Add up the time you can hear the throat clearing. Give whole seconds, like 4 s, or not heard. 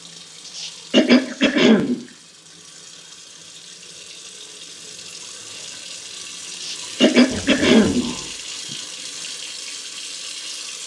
4 s.